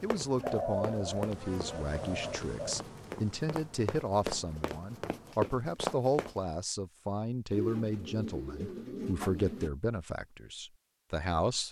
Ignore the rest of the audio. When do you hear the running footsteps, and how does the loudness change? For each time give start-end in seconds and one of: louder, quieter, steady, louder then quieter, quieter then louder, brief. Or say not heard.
0.0-6.3 quieter then louder.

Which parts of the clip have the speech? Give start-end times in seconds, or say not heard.
0.0-11.6.